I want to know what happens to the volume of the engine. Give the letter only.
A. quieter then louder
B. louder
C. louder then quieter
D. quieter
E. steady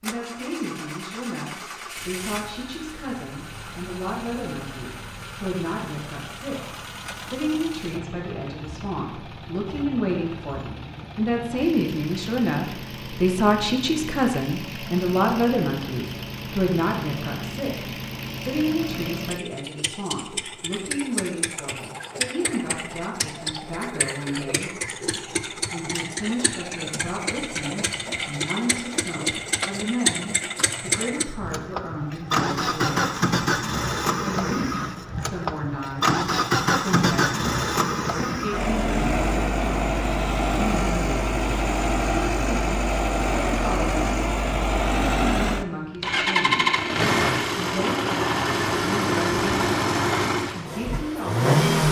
B.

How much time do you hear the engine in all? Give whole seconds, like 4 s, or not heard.
52 s.